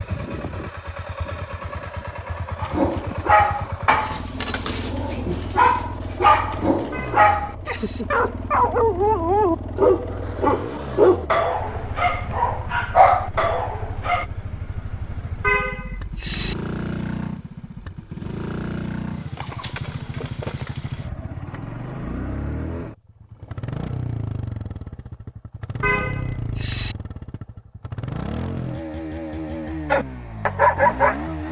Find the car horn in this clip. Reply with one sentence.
The car horn can be heard from 6.9 to 8.1 s, from 15.4 to 16.6 s and from 25.8 to 26.9 s.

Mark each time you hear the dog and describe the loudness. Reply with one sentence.
You can hear the dog from 2.6 to 14.2 s, at a steady volume; and briefly from 29.9 to 31.2 s.